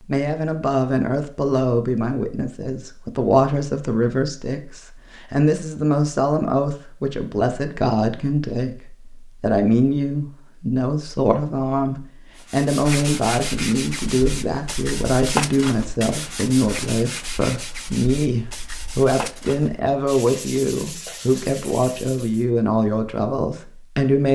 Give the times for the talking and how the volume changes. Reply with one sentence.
The talking can be heard from 0.0 to 24.3 s, at a steady volume.